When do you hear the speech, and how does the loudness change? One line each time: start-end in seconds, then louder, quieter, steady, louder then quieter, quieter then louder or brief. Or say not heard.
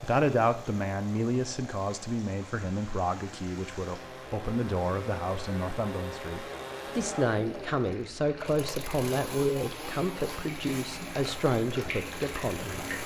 0.0-12.8 steady.